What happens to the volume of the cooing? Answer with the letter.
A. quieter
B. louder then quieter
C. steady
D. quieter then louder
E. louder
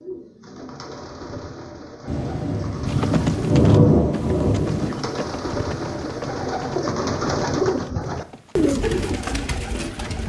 E.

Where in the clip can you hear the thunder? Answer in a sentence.
You can hear the thunder from 2.0 to 5.0 s.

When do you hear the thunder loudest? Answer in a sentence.
The volume of the thunder peaks at 4 seconds.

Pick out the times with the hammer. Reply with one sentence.
The hammer can't be heard in this clip.